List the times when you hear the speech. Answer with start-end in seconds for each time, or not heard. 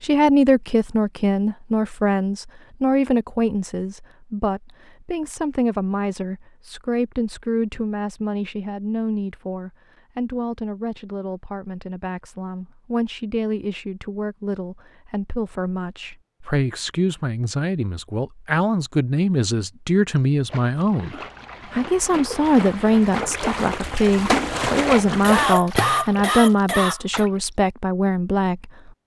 0.0-28.9.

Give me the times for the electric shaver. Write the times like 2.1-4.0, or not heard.
not heard.